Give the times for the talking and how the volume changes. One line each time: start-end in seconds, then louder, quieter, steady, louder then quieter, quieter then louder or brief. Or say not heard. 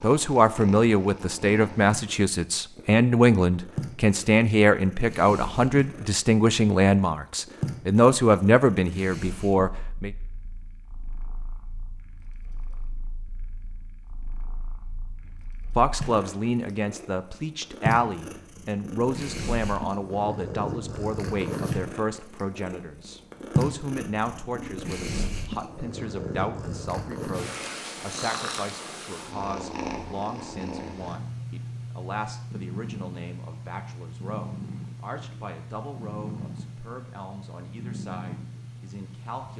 0.0-10.1 steady
15.8-39.5 quieter.